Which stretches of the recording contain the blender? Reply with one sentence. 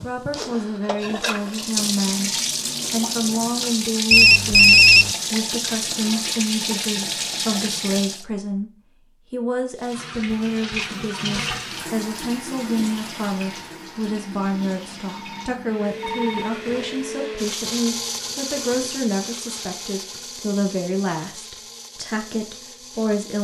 You can hear the blender from 15.7 to 23.3 s.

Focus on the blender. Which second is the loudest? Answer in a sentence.
The volume of the blender peaks at 18 seconds.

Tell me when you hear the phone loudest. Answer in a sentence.
The loudest moment of the phone is at 5 seconds.